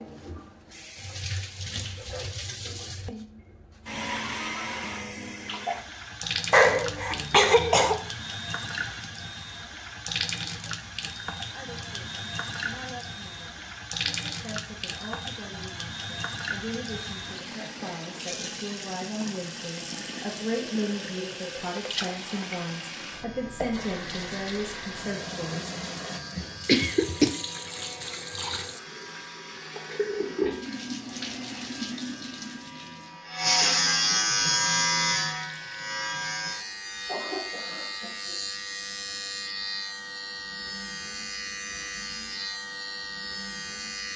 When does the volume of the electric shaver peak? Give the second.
34 s.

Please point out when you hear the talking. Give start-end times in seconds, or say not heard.
11.5-26.1.